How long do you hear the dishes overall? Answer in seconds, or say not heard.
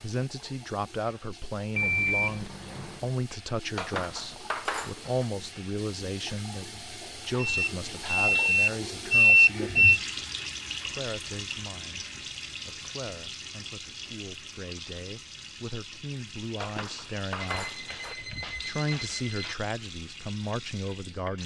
3 s.